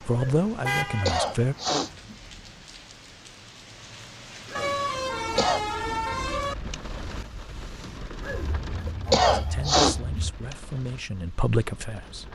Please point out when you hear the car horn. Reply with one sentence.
The car horn can be heard from 0.6 to 1.2 s, from 4.5 to 6.5 s and from 8.3 to 10.3 s.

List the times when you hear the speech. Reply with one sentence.
You can hear the speech from 0.0 to 1.6 s and from 9.2 to 12.3 s.